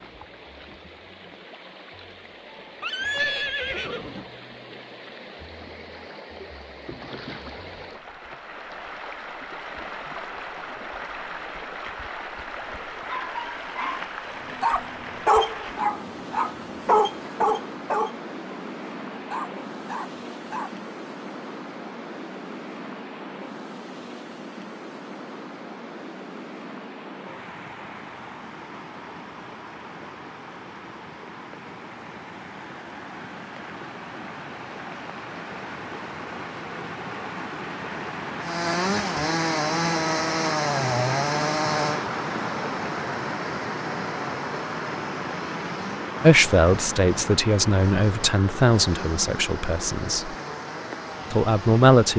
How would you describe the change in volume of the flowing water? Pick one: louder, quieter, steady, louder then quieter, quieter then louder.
louder.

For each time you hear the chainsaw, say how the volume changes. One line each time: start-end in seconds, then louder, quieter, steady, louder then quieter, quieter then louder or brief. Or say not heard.
38.4-52.1 quieter.